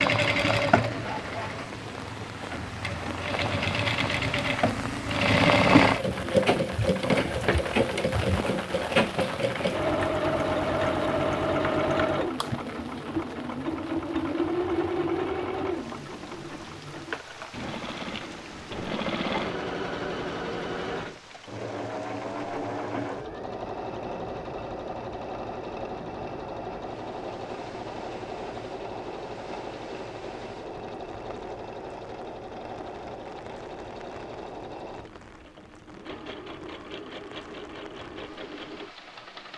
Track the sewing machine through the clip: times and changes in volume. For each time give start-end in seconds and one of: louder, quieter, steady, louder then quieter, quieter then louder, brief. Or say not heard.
0.0-39.5 quieter.